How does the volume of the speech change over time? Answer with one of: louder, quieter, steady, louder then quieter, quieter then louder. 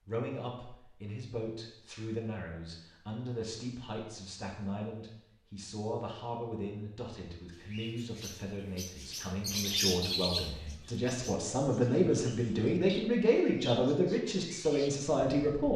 louder.